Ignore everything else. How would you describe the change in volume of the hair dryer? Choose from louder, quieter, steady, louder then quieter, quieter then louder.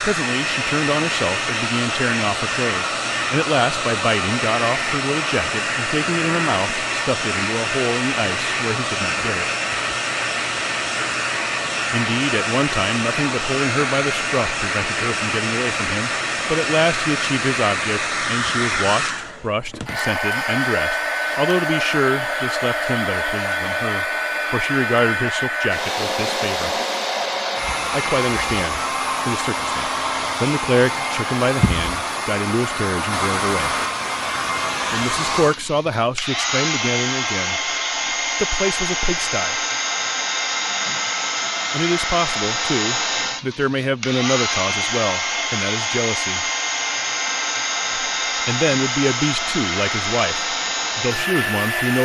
steady.